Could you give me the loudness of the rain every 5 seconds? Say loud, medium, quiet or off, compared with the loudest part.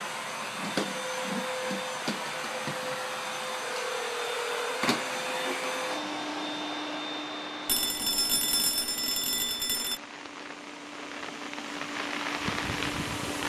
off, medium, loud.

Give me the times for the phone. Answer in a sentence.
The phone can be heard from 3.8 to 4.8 s and from 7.7 to 10.0 s.